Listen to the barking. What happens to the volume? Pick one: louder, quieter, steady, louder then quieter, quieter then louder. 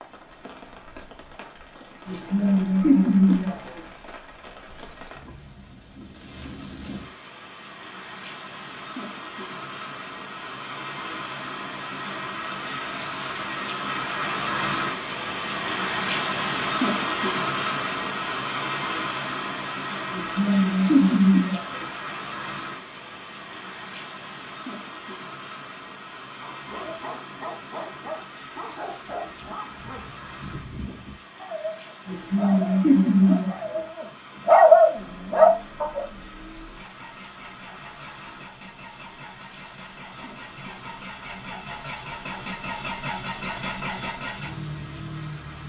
louder.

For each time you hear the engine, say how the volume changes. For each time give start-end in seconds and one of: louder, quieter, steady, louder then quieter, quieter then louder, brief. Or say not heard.
35.0-45.6 louder.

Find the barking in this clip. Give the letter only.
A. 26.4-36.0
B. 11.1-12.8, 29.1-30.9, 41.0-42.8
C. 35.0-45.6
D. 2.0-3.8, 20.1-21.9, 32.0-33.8
A.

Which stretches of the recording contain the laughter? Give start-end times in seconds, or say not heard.
2.0-3.8, 20.1-21.9, 32.0-33.8.